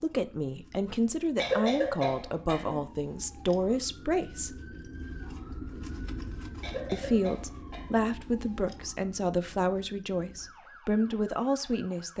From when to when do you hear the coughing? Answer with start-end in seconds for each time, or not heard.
1.4-2.9, 6.6-8.1.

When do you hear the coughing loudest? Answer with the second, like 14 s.
2 s.